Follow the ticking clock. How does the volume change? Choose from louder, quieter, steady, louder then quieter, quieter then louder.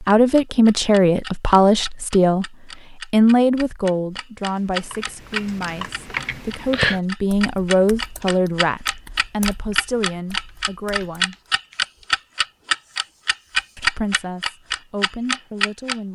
louder.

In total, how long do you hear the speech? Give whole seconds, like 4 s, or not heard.
14 s.